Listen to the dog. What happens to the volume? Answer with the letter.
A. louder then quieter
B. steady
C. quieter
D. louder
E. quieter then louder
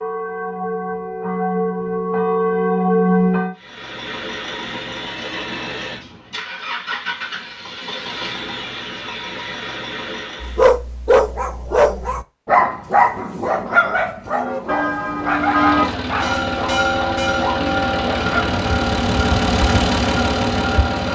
C.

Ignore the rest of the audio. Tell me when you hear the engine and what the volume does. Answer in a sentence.
The engine can be heard from 3.5 to 10.7 s, at a steady volume; and from 15.2 to 21.0 s, getting louder.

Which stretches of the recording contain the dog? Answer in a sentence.
The dog can be heard from 10.4 to 18.4 s.